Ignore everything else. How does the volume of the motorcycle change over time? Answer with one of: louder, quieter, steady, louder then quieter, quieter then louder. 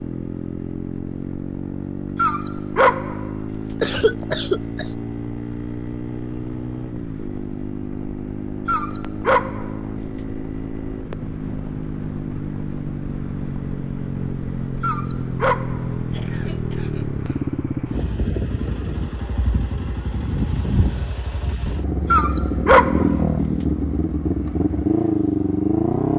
louder.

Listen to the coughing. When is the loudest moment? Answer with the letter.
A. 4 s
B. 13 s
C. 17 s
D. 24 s
A.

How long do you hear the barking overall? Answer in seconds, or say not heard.
6 s.